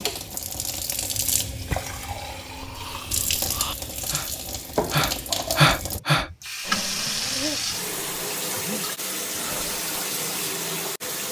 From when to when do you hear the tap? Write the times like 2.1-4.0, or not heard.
0.0-11.2.